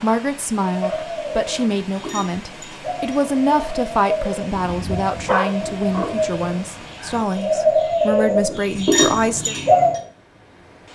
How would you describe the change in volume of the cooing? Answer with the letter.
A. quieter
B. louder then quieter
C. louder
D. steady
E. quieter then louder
C.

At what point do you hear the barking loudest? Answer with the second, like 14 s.
5 s.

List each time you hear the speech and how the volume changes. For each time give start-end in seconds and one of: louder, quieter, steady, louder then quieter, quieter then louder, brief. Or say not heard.
0.0-9.6 steady.